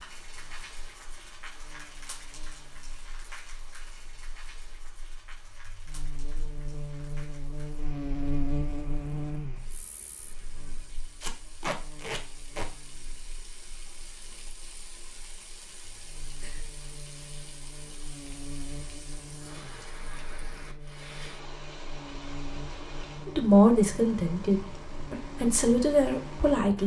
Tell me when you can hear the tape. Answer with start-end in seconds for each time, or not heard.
11.2-12.7.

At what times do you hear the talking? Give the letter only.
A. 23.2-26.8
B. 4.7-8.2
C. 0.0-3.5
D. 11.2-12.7
A.